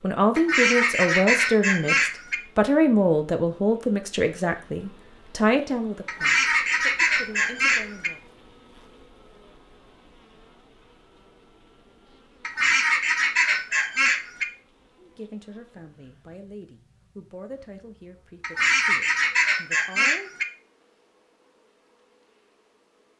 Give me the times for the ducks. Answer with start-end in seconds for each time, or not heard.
0.3-2.4, 6.0-8.1, 12.4-14.4, 18.4-20.4.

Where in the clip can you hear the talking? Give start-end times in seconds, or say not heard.
0.0-8.2, 14.9-20.3.